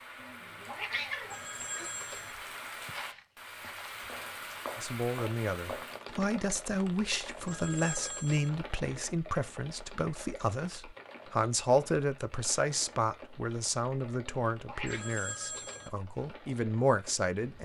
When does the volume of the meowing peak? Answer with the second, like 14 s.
1 s.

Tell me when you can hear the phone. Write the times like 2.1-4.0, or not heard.
1.2-2.4, 7.5-8.5, 14.8-15.9.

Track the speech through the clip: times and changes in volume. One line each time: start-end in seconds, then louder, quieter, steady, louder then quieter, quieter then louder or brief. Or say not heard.
4.8-17.6 steady.